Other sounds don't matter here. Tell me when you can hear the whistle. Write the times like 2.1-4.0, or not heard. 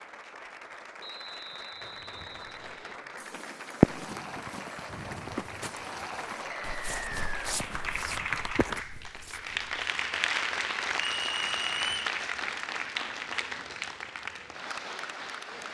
1.0-3.0, 6.7-7.5, 11.1-12.2.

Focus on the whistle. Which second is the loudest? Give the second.
12 s.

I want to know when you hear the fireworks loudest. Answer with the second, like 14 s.
4 s.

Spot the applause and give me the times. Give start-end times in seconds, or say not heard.
0.0-15.6.